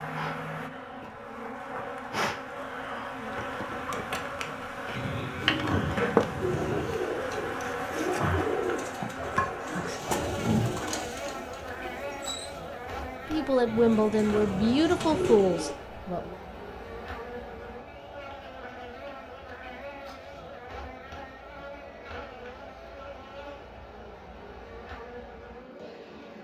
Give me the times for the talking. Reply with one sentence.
The talking can be heard from 13.2 to 16.4 s.